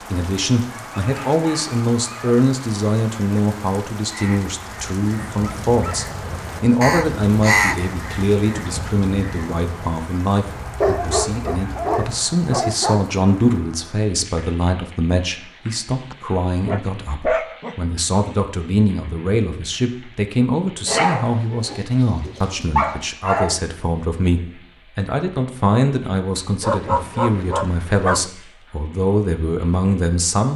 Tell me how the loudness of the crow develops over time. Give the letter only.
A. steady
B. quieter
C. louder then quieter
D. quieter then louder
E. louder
C.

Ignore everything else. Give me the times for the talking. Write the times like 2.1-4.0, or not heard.
0.0-30.5.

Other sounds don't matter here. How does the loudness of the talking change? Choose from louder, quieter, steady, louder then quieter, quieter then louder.
steady.